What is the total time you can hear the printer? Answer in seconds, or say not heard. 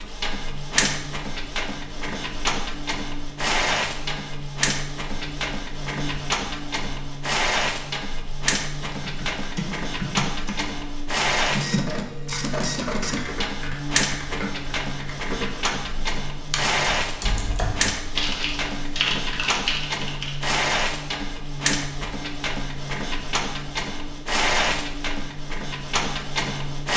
27 s.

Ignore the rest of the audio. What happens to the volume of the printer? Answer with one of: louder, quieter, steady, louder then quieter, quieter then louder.
steady.